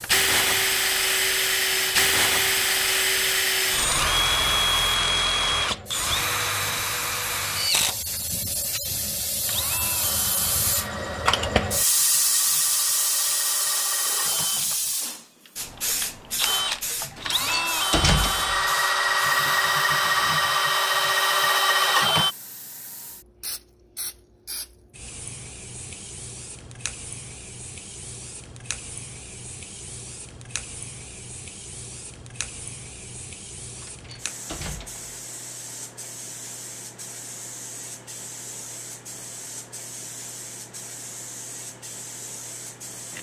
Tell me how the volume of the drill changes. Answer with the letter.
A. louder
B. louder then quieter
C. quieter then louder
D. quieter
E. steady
C.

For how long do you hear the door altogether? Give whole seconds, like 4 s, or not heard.
3 s.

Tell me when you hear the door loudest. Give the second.
18 s.